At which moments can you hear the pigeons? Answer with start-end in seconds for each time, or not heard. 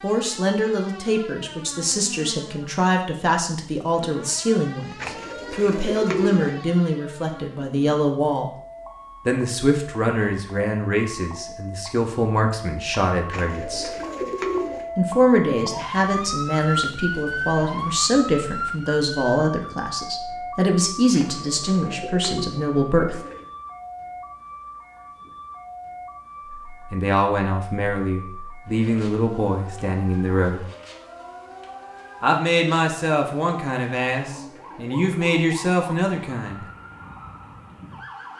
5.0-6.6, 13.3-14.9, 21.1-23.5, 34.2-35.4.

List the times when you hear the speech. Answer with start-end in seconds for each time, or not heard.
0.0-8.5, 9.2-13.9, 14.9-23.2, 26.9-30.6, 32.2-36.6.